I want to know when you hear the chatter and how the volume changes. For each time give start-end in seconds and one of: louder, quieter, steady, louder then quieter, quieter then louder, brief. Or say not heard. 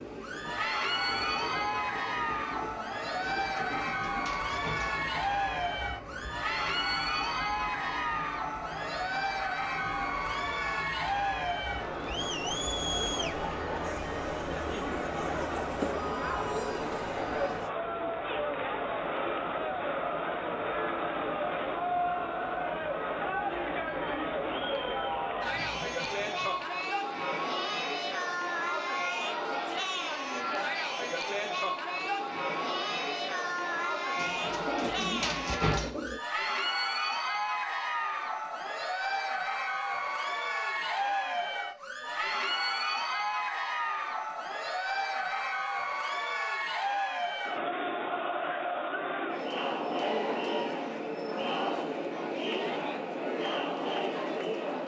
0.1-54.8 steady.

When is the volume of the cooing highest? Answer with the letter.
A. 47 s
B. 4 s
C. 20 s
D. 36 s
D.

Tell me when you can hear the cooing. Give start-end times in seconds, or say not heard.
3.4-5.2, 34.1-36.2.